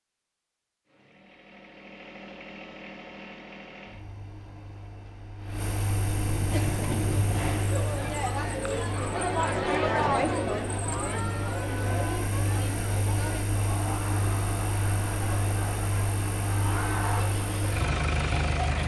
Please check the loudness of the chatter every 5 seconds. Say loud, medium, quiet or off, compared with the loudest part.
off, loud, loud, medium.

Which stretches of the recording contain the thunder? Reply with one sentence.
The thunder can be heard from 6.0 to 7.6 s.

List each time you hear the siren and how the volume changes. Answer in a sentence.
The siren can't be heard in this clip.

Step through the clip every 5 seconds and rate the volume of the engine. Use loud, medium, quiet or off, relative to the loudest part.
quiet, loud, loud, loud.